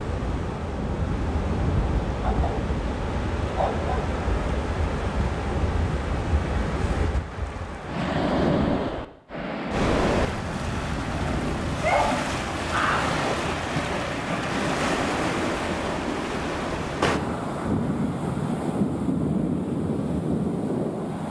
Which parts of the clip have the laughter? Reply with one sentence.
The laughter can't be heard in this clip.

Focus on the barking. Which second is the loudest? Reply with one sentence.
The loudest moment of the barking is at 12 seconds.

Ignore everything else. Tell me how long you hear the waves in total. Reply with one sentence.
You can hear the waves for 21 seconds altogether.